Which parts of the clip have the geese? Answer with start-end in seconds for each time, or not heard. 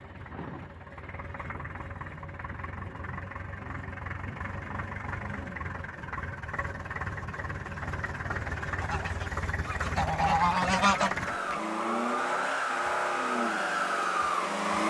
8.8-11.7.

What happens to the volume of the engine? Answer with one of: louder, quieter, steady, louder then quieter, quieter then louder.
louder.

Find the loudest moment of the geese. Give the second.
11 s.